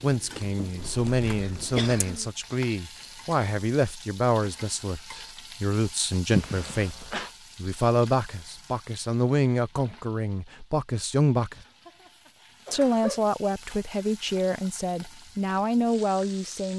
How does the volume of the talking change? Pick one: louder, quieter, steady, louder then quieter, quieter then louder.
steady.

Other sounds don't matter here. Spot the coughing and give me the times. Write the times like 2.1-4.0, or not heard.
0.8-2.3, 6.3-7.3, 11.5-13.2.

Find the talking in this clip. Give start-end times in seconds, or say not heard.
0.0-11.6, 12.7-16.7.